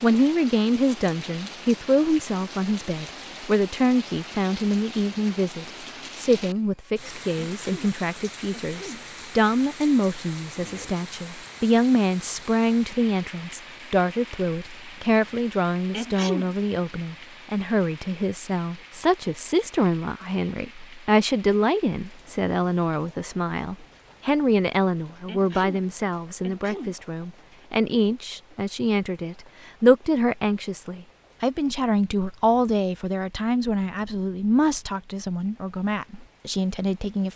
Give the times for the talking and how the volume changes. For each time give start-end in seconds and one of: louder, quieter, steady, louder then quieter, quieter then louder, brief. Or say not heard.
0.0-37.3 steady.